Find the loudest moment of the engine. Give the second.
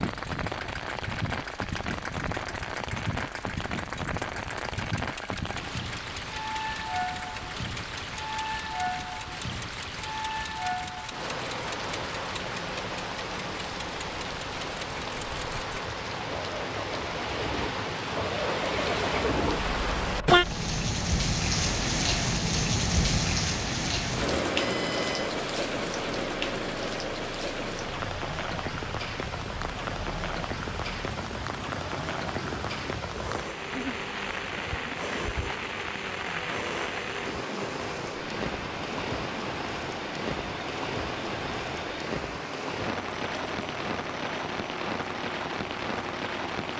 19 s.